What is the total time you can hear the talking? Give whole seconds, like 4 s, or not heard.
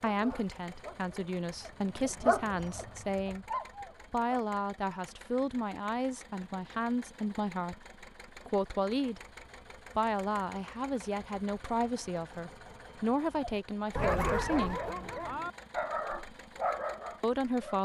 15 s.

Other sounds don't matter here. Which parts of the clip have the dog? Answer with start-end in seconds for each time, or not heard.
0.0-4.5, 13.3-17.8.